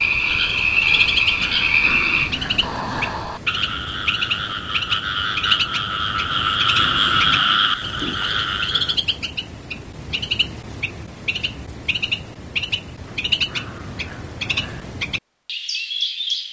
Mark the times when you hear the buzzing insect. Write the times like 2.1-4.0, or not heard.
not heard.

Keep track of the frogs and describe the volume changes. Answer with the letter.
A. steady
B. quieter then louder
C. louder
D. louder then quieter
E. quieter
B.